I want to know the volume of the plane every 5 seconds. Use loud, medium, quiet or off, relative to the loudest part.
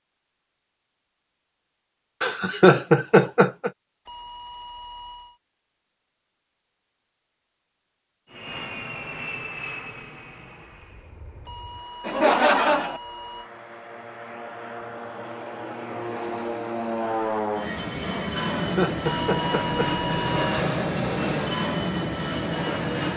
off, medium, quiet, loud, loud.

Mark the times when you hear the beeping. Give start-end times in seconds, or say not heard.
4.0-5.4, 11.4-13.5, 19.0-20.6.